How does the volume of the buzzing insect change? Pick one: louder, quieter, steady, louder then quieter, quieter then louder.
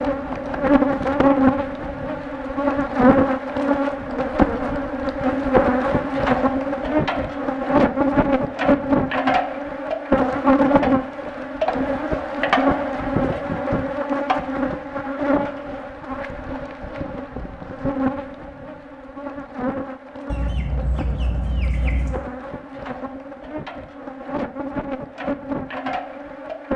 quieter.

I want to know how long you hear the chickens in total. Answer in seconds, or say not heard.
2 s.